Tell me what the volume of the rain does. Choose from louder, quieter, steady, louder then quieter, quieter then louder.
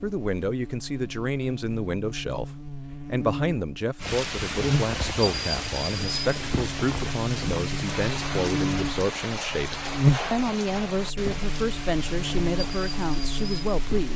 quieter.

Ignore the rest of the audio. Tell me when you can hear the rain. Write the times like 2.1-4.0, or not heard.
4.0-14.1.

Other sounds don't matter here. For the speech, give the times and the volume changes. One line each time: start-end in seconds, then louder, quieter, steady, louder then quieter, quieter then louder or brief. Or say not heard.
0.0-14.1 steady.